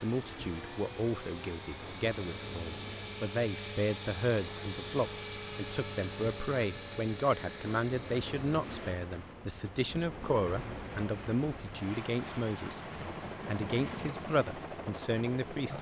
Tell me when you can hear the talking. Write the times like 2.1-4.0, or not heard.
0.0-15.7.